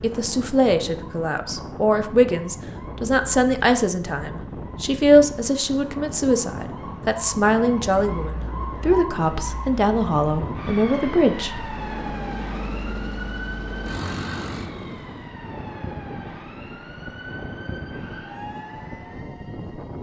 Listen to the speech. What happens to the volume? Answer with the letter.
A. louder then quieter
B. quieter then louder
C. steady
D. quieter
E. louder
C.